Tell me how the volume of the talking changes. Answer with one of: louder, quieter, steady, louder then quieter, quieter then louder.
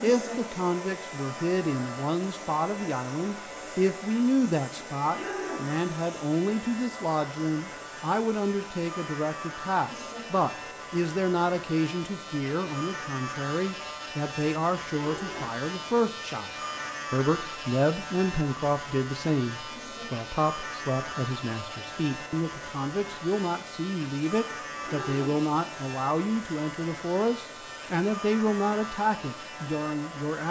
steady.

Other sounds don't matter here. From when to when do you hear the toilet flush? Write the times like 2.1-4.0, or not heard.
not heard.